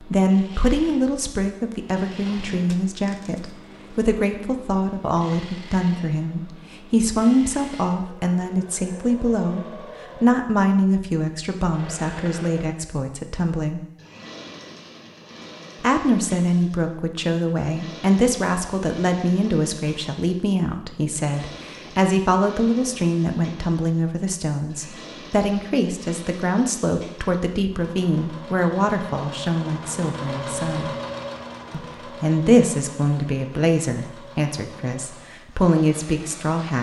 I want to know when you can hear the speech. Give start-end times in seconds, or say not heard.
0.0-13.8, 15.8-30.9, 31.7-36.7.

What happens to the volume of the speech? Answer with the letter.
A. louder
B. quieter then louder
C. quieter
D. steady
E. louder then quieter
D.